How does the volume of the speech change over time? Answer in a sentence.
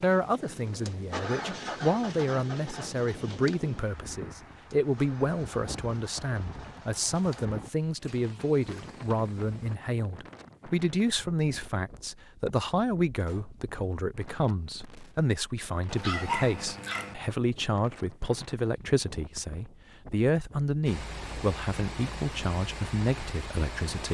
The loudness of the speech stays about the same.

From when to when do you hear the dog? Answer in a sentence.
The dog can be heard from 15.8 to 17.1 s.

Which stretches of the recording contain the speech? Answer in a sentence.
The speech can be heard from 0.0 to 24.0 s.